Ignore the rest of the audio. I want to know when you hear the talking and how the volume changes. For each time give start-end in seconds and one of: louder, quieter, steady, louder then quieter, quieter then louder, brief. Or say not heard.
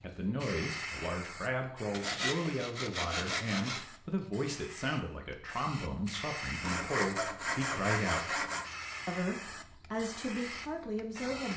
0.0-8.4 steady
9.1-11.5 brief.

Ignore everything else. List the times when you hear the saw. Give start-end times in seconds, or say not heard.
1.9-3.9, 6.6-8.7.